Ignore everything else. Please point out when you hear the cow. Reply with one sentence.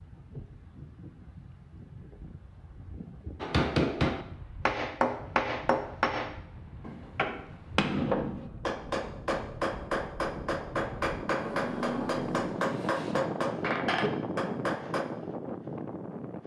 You can hear the cow from 11.3 to 13.2 s.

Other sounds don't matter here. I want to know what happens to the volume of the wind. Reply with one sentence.
The loudness of the wind goes up.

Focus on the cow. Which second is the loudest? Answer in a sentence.
The volume of the cow peaks at 12 seconds.